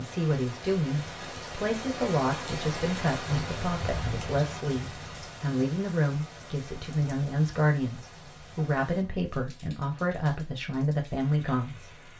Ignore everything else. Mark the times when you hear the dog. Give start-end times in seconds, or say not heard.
not heard.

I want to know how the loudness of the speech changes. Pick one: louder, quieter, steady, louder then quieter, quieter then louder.
steady.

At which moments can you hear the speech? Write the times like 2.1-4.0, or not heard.
0.0-12.0.